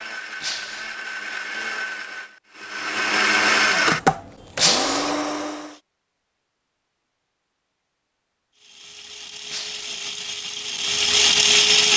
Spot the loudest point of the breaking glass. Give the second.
5 s.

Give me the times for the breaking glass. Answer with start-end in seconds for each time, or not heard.
0.4-0.9, 4.5-5.2, 9.4-9.9.